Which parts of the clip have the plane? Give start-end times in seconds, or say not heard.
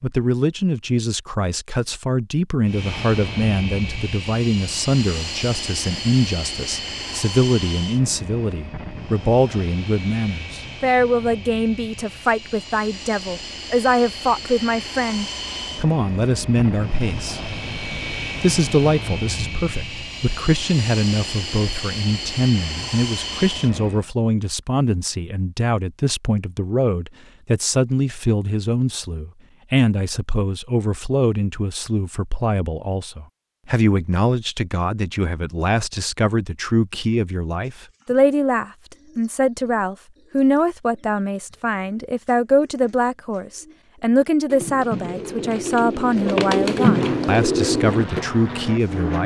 2.6-24.1, 46.9-49.2.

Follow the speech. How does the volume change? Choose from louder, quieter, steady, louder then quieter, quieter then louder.
steady.